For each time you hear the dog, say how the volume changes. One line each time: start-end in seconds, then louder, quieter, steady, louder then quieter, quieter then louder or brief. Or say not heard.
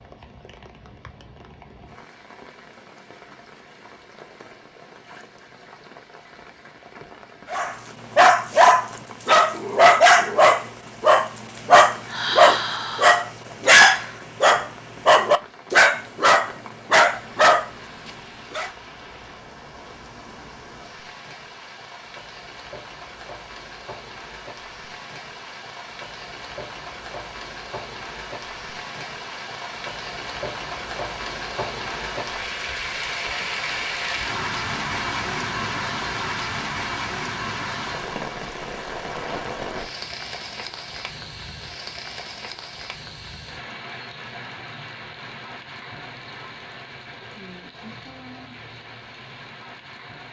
7.5-18.7 steady.